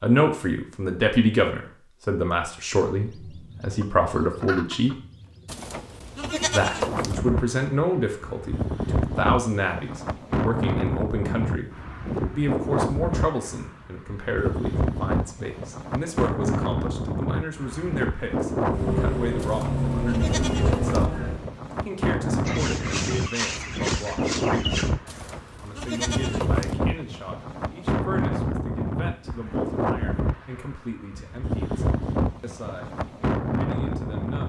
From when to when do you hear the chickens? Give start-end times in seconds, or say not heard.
3.0-5.6, 22.4-24.9.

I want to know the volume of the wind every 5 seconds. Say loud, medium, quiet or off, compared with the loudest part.
off, loud, loud, loud, loud, loud, loud.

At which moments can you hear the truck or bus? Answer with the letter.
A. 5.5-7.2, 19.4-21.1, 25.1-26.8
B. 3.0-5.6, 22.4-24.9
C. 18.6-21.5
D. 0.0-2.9
C.